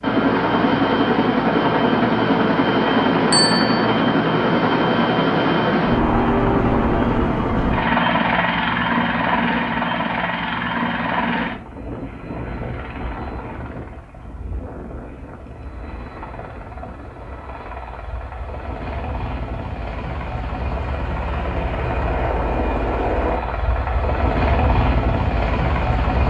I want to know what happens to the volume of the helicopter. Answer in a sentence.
The loudness of the helicopter goes down, then up.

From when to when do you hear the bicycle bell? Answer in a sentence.
You can hear the bicycle bell from 3.3 to 3.9 s.